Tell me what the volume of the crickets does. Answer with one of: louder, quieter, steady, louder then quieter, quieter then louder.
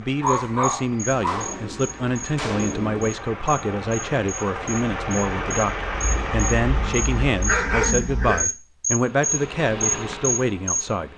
louder.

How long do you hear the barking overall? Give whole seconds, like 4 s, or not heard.
4 s.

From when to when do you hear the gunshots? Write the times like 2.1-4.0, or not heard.
1.1-3.1.